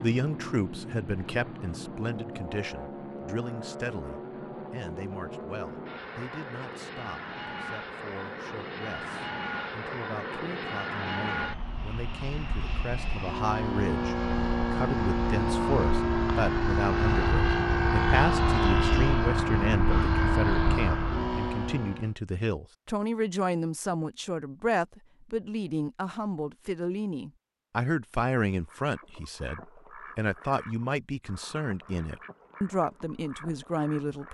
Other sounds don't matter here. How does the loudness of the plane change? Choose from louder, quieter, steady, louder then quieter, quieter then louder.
louder.